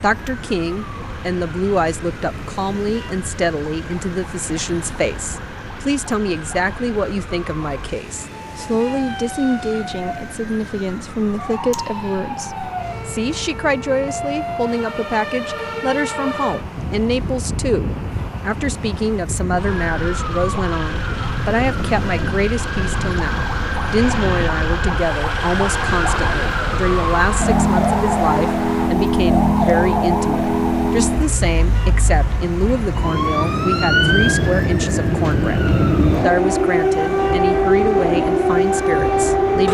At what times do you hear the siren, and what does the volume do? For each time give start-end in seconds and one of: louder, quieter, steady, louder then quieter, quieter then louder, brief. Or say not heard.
0.0-39.7 louder.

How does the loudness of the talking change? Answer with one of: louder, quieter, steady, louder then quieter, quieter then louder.
steady.